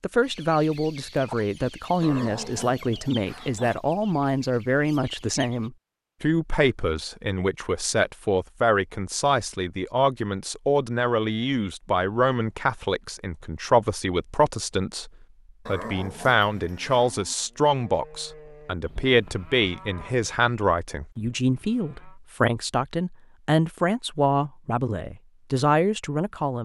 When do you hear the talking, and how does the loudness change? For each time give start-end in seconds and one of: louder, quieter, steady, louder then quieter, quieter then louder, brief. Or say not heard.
0.0-26.6 steady.